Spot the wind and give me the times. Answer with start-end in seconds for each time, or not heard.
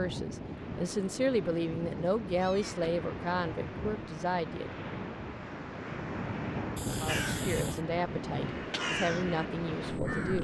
0.0-10.3.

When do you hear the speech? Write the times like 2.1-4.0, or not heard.
0.0-4.8, 6.9-10.3.